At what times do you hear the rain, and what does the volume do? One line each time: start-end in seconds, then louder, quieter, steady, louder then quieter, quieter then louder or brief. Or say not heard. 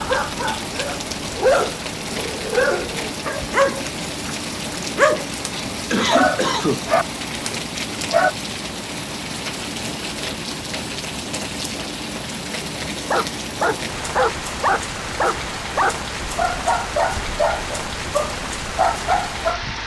0.0-19.8 steady.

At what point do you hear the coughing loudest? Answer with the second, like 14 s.
6 s.